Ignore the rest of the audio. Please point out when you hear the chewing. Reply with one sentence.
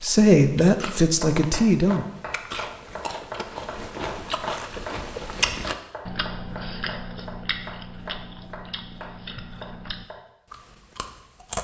The chewing can be heard from 0.0 to 11.5 s.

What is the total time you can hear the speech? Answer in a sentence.
You can hear the speech for 2 seconds altogether.